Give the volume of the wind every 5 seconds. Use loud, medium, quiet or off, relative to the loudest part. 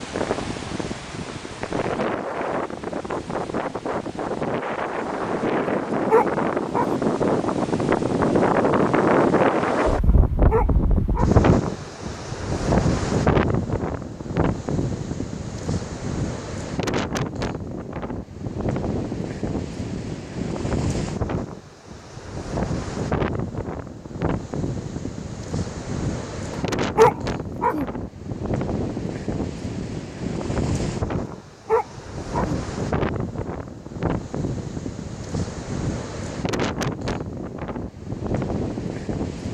medium, loud, loud, medium, medium, medium, medium, medium.